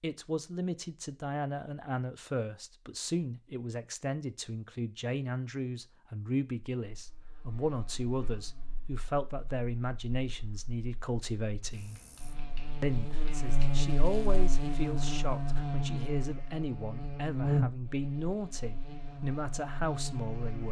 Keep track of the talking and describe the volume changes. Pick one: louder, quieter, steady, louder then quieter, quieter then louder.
steady.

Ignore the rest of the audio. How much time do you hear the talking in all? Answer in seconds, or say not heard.
20 s.